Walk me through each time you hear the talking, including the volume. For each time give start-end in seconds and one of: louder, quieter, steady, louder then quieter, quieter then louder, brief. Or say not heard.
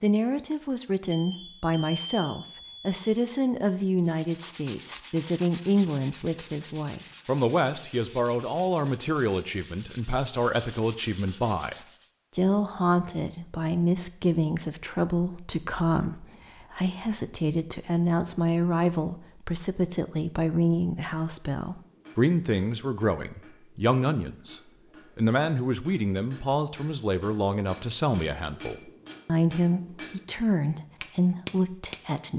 0.0-11.8 steady
12.3-32.3 steady.